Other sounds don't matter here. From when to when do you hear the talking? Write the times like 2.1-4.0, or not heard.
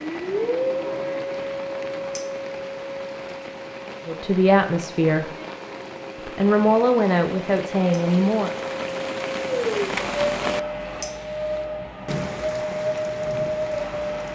4.0-5.3, 6.2-8.5.